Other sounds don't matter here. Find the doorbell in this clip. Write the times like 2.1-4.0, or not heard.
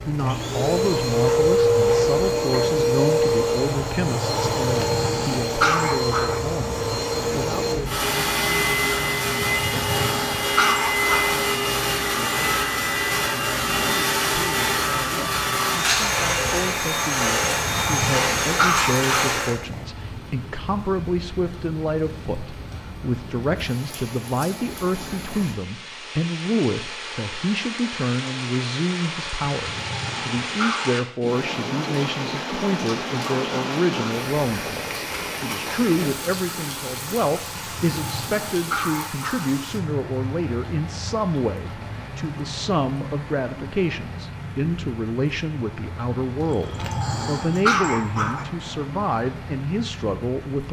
not heard.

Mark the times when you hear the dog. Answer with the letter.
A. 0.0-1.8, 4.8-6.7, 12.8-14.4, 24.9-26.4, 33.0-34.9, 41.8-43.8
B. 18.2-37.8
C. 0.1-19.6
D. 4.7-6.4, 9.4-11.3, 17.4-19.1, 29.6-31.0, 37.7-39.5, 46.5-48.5
D.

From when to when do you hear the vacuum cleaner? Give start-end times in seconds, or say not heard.
0.1-19.6.